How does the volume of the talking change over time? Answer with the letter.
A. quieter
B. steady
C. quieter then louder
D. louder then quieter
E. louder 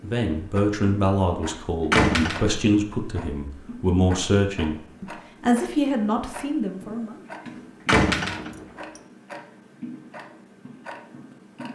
B.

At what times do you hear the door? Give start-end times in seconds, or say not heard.
1.9-2.5, 7.8-8.7.